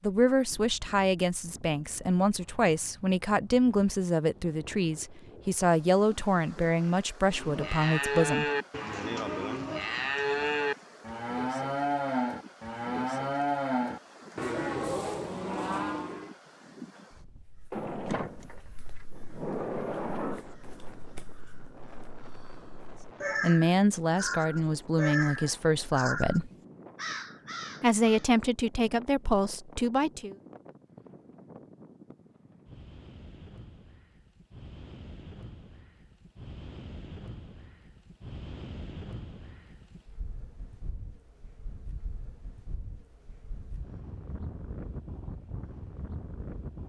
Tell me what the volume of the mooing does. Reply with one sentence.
The loudness of the mooing stays about the same.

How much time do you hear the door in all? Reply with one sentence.
You can hear the door for 3 seconds altogether.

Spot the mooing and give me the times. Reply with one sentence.
The mooing can be heard from 7.3 to 16.4 s.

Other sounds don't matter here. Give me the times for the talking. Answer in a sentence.
You can hear the talking from 0.0 to 8.4 s, from 23.4 to 26.5 s and from 27.8 to 30.4 s.